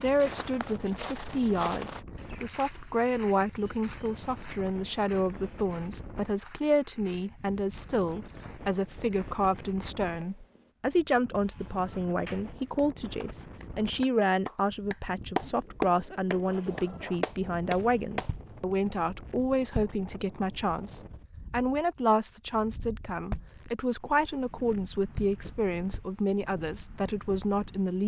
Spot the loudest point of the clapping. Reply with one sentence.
The volume of the clapping peaks at 16 seconds.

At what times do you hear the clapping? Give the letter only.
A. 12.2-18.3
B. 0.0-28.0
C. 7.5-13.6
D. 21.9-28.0
A.